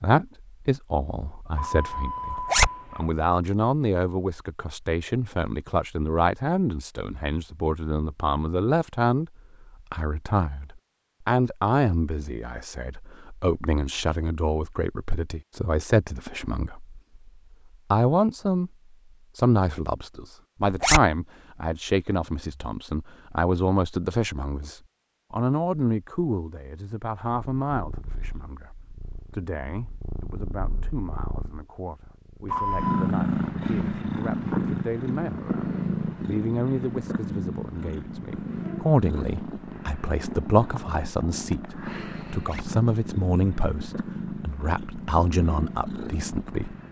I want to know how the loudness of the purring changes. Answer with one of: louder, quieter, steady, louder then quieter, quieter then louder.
louder then quieter.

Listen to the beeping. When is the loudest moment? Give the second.
33 s.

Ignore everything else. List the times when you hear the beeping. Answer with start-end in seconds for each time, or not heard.
1.6-3.1, 32.5-33.1.